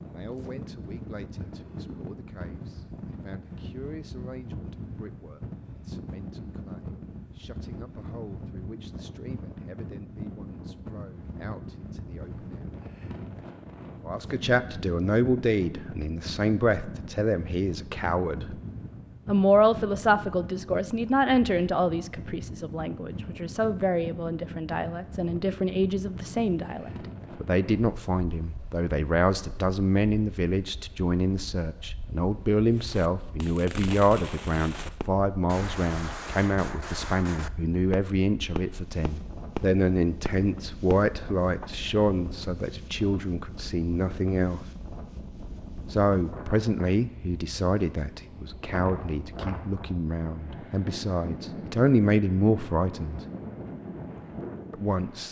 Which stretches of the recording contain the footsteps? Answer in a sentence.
The footsteps can't be heard in this clip.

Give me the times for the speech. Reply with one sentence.
You can hear the speech from 0.0 to 12.8 s, from 14.0 to 18.6 s, from 19.2 to 44.6 s, from 45.9 to 53.2 s and from 54.7 to 55.2 s.